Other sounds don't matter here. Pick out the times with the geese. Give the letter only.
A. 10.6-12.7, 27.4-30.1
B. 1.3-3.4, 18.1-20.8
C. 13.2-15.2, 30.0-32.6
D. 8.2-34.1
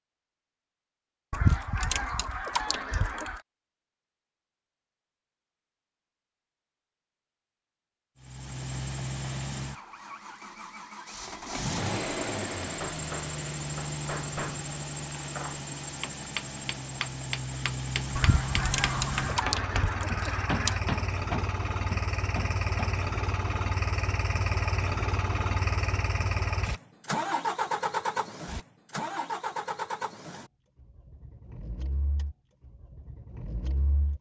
B.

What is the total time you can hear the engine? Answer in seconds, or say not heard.
26 s.